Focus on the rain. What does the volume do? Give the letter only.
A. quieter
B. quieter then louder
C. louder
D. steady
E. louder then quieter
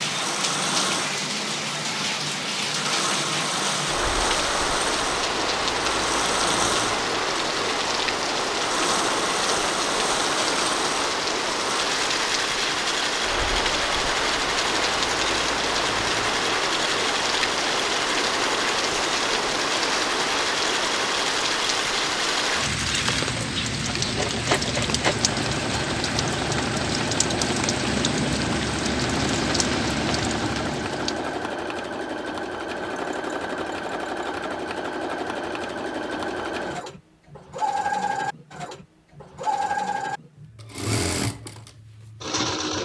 D.